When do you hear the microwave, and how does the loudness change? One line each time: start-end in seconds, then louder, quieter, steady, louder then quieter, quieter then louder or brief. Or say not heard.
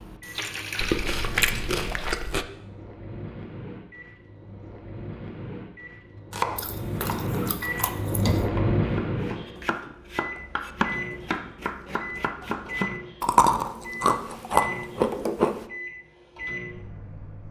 0.0-17.4 louder then quieter.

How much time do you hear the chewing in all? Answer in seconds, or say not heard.
6 s.